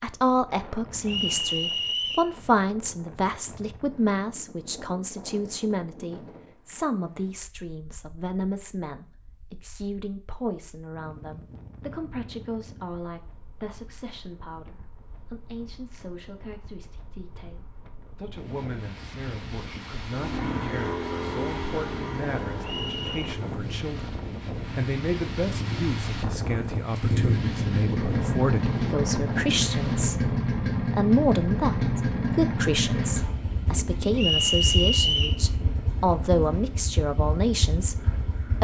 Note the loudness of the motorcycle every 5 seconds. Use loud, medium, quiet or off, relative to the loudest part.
off, off, off, off, medium, loud, loud, medium.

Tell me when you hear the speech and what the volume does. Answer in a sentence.
The speech can be heard from 0.0 to 38.5 s, getting quieter then louder.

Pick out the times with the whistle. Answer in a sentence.
You can hear the whistle from 1.1 to 2.3 s, from 22.6 to 23.2 s and from 34.1 to 35.4 s.